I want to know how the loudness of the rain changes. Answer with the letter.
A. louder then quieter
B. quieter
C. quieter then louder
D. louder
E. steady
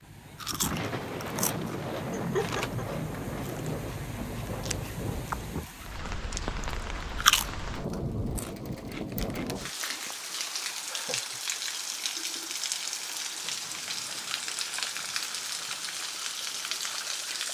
E.